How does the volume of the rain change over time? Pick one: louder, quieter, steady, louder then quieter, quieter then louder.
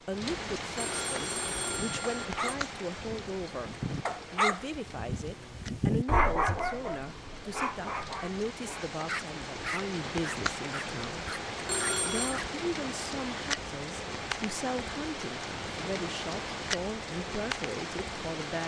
quieter then louder.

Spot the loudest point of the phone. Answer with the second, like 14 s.
12 s.